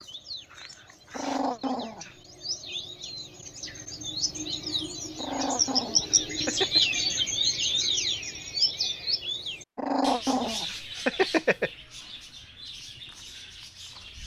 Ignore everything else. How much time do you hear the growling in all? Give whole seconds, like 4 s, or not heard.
5 s.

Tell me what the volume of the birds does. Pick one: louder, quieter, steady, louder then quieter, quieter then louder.
louder then quieter.